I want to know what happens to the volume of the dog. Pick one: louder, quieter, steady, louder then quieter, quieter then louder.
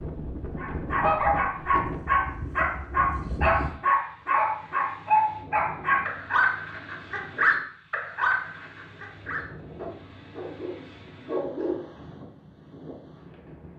quieter.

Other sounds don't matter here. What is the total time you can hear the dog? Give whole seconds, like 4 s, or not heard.
12 s.